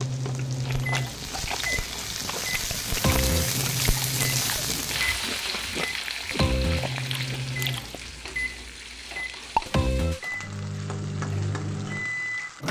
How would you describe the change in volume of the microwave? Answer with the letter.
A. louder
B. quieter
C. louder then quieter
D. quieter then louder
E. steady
E.